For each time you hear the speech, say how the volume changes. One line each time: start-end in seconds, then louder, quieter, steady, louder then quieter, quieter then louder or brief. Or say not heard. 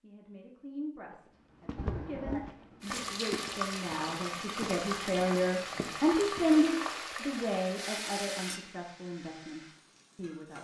0.0-10.6 louder then quieter.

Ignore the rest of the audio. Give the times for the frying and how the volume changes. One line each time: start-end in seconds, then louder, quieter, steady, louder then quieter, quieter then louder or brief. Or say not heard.
2.8-10.6 quieter.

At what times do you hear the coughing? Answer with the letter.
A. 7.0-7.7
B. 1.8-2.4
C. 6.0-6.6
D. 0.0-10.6
B.